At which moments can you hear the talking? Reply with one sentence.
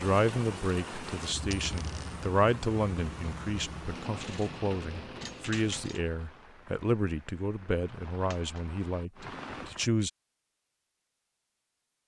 You can hear the talking from 0.0 to 10.1 s.